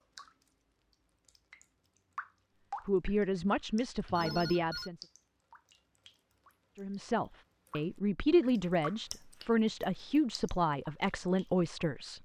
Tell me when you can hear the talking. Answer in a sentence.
The talking can be heard from 2.9 to 5.0 s and from 6.8 to 12.1 s.